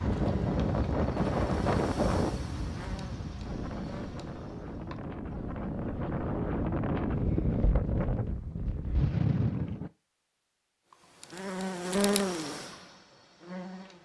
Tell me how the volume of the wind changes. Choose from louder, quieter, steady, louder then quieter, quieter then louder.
quieter then louder.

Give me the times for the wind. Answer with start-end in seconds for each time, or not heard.
0.0-9.9.